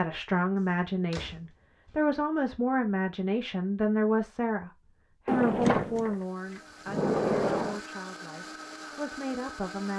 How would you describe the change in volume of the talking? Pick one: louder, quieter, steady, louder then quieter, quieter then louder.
quieter.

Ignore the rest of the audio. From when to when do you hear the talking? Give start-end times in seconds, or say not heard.
0.0-9.9.